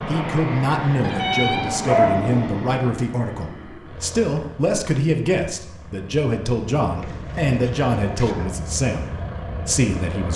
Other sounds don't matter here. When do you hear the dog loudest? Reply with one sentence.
The loudest moment of the dog is at 2 seconds.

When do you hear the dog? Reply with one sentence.
The dog can be heard from 1.0 to 2.5 s and from 7.0 to 8.6 s.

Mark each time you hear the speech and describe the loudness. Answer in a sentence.
The speech can be heard from 0.1 to 10.3 s, at a steady volume.